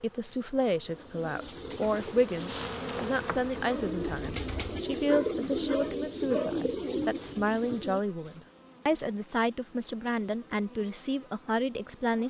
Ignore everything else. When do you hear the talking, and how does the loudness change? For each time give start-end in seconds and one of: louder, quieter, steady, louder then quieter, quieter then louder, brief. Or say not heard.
0.0-12.2 steady.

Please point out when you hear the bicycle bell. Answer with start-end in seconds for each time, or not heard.
not heard.